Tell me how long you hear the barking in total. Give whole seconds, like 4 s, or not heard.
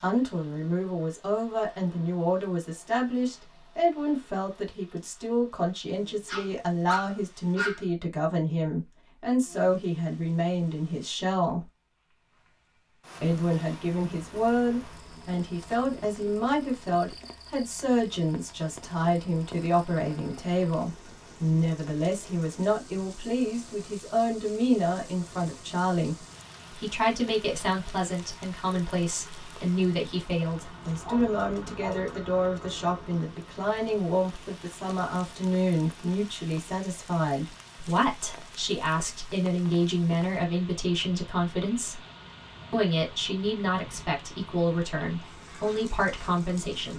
3 s.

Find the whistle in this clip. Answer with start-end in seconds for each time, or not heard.
not heard.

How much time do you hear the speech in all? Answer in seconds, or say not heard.
45 s.